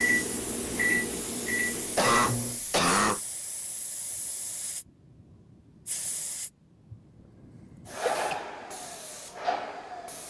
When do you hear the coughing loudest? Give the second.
3 s.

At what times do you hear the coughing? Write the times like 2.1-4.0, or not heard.
1.8-3.2, 7.9-8.4.